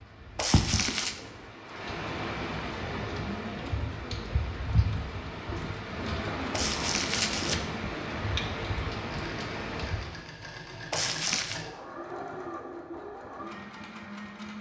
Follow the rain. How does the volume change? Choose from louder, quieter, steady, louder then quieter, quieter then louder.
steady.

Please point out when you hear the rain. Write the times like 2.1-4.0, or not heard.
0.0-10.2.